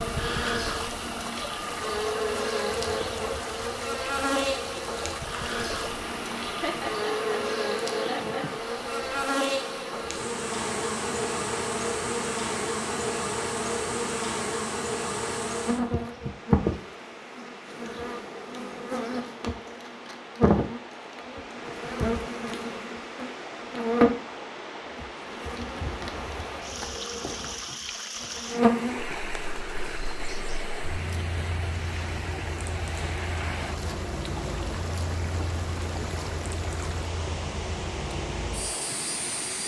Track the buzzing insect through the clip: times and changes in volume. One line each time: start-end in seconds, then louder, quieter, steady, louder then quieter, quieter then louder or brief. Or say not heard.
0.0-39.6 quieter.